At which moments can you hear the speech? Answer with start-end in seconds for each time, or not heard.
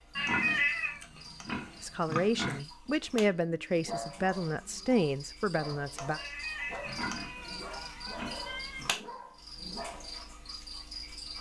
1.8-6.2.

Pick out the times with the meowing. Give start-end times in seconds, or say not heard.
0.1-1.0, 6.2-8.8.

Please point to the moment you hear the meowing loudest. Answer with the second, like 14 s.
1 s.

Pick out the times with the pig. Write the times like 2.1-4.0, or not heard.
0.1-2.6, 6.8-8.9.